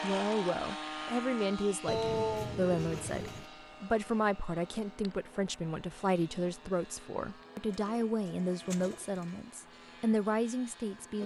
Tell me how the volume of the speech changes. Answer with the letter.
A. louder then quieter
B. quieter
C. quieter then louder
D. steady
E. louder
D.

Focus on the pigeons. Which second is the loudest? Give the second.
2 s.